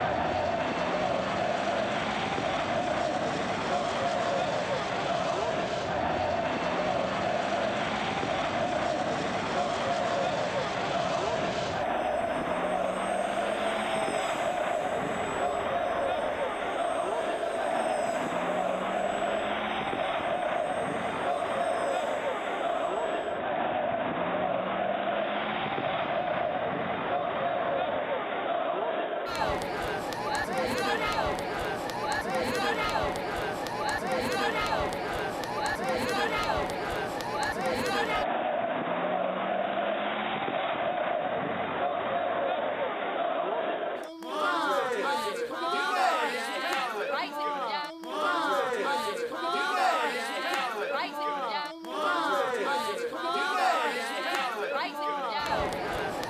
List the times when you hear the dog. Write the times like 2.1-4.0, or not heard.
not heard.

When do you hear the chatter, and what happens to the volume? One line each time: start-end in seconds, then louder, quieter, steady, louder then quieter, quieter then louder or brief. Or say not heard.
0.0-56.2 steady.